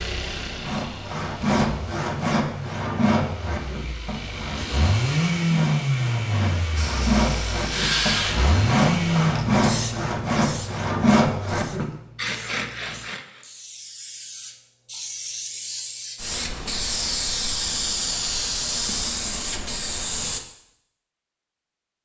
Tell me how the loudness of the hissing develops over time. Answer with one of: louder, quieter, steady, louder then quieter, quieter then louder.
quieter then louder.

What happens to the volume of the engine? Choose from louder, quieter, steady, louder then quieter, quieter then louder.
louder.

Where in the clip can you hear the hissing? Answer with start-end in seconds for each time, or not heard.
6.8-20.4.